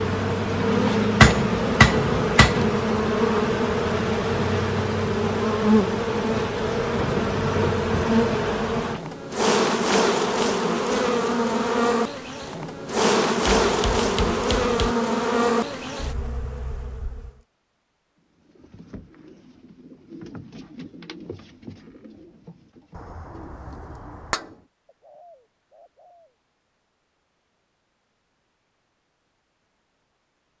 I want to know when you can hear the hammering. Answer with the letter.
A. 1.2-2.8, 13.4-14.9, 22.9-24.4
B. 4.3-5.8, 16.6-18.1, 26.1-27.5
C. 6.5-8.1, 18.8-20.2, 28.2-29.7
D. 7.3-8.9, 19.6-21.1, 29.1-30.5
A.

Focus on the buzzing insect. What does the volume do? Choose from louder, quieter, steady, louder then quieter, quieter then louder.
steady.